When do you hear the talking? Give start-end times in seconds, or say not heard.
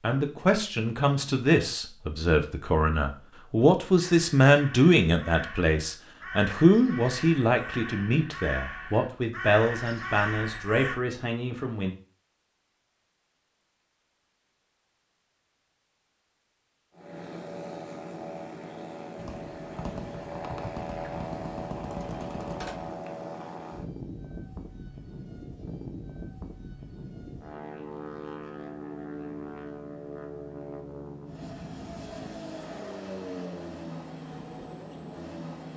0.0-11.9.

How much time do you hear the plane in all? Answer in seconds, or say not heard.
19 s.